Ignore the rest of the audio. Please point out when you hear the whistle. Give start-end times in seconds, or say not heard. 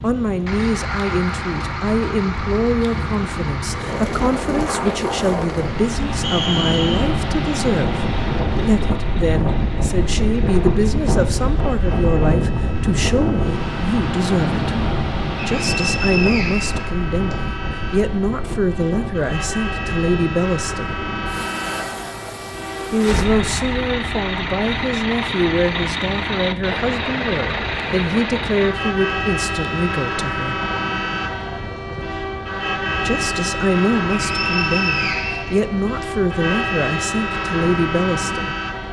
6.2-7.1, 15.5-17.4, 34.2-36.0.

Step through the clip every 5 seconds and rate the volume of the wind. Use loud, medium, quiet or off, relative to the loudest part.
medium, loud, loud, medium, medium, quiet, quiet, quiet.